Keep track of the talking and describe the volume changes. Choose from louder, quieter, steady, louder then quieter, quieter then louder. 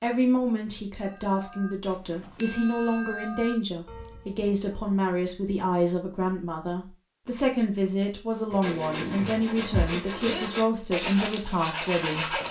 steady.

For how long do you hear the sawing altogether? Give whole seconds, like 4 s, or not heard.
4 s.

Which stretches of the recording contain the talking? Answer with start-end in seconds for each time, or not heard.
0.0-12.4.